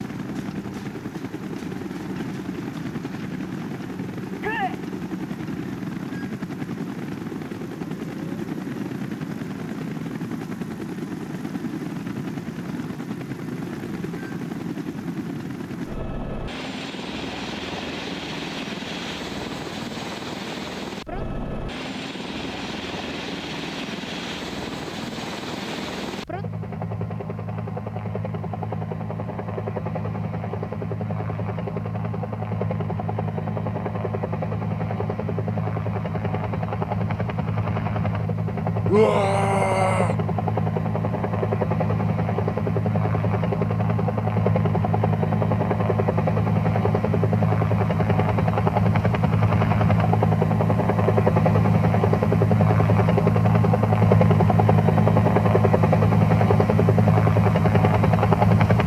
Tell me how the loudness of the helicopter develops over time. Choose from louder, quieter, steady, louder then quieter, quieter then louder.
louder.